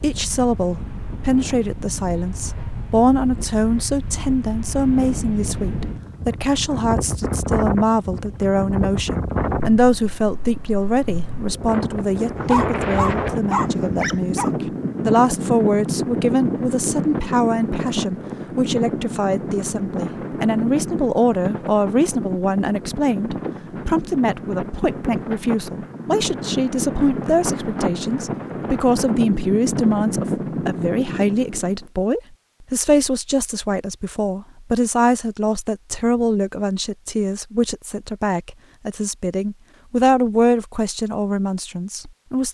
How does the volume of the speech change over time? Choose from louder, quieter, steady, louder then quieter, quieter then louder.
steady.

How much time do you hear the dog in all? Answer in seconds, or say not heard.
2 s.